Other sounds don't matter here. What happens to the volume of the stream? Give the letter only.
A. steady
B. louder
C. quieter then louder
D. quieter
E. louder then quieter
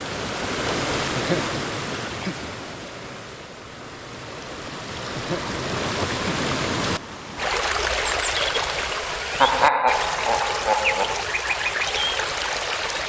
C.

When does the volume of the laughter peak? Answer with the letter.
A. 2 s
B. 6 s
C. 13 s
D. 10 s
D.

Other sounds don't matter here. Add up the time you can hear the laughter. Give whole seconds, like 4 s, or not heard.
5 s.